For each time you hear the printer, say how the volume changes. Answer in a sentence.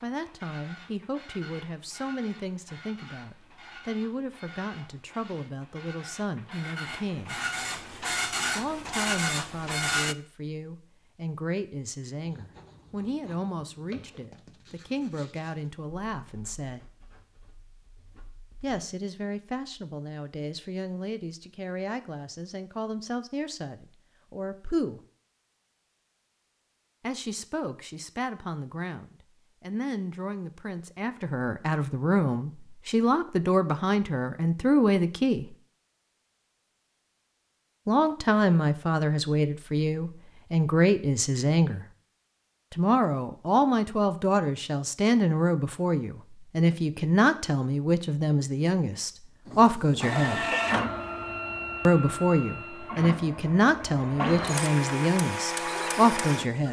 The printer can be heard from 0.0 to 10.2 s, getting louder; and from 49.5 to 56.6 s, getting quieter then louder.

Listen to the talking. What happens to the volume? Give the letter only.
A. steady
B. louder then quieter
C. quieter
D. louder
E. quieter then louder
D.